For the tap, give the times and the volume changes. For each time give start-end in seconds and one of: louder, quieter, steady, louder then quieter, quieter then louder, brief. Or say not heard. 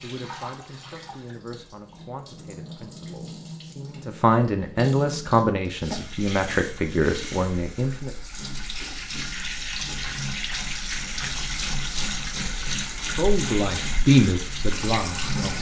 0.0-15.5 louder.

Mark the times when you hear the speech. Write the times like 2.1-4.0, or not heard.
0.0-8.1, 13.2-15.5.